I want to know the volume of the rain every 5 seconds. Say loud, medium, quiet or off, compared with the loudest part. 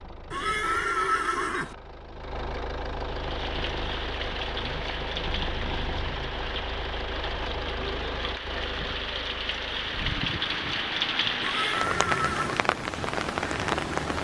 medium, medium, loud.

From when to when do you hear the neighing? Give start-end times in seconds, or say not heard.
0.3-1.8, 11.4-12.7.